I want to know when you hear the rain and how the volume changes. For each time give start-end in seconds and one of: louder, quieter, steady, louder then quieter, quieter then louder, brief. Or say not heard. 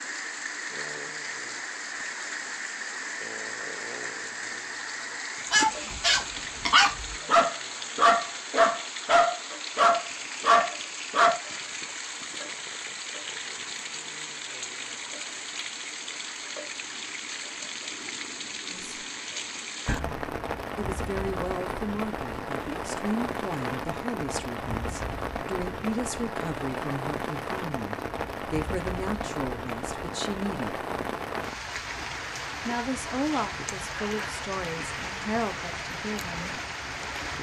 0.0-37.3 steady.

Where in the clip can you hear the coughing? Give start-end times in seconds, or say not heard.
not heard.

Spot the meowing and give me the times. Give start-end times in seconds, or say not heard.
19.9-20.4.